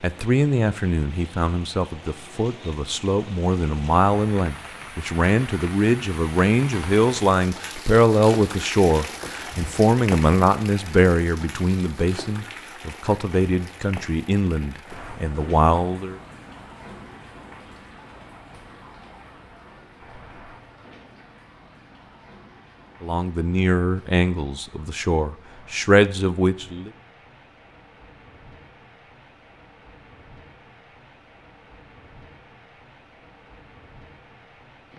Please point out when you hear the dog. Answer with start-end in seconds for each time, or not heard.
not heard.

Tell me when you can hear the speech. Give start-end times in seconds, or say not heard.
0.0-16.2, 23.0-26.9.